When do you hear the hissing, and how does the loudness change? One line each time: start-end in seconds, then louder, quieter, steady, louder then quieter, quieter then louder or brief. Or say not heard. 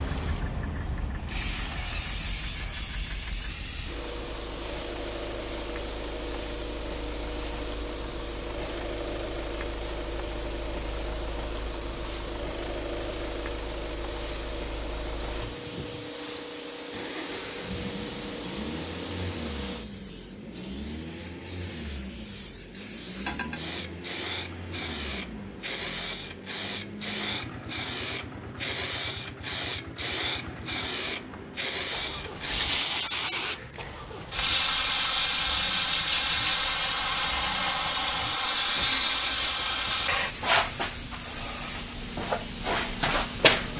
0.0-43.7 louder.